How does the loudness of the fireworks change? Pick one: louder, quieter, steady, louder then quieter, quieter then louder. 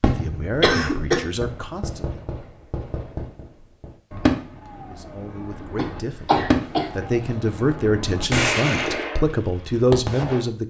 louder.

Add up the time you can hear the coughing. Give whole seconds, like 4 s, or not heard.
3 s.